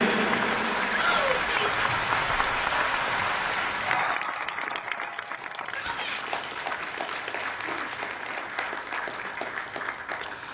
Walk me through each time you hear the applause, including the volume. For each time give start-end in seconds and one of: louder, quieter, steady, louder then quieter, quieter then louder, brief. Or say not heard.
0.0-10.4 quieter.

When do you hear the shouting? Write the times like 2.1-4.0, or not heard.
0.9-1.9, 5.7-6.2.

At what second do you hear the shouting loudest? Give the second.
1 s.